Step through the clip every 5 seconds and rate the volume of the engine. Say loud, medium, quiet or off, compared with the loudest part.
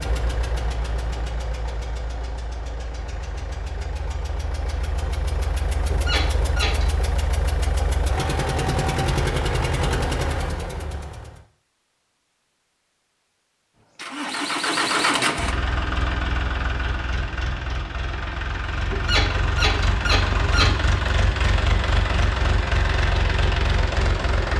medium, loud, loud, loud, loud.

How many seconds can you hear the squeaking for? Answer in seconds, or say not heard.
3 s.